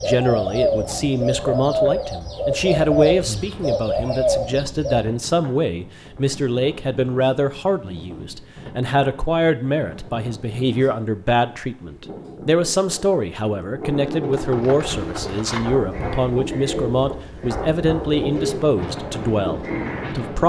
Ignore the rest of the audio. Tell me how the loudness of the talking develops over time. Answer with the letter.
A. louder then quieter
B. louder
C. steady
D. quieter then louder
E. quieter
C.